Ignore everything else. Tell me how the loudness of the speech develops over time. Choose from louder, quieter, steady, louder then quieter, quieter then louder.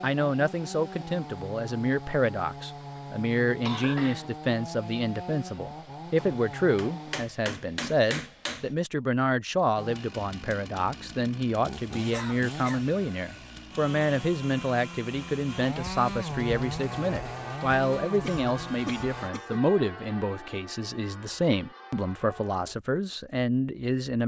steady.